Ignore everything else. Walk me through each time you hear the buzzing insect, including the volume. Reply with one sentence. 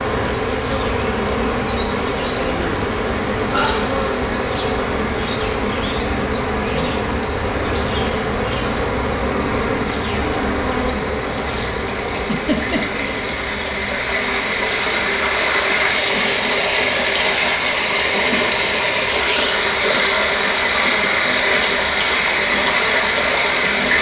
The buzzing insect can be heard from 0.0 to 23.9 s, getting quieter.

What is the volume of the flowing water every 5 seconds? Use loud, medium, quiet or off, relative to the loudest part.
quiet, quiet, medium, loud, loud.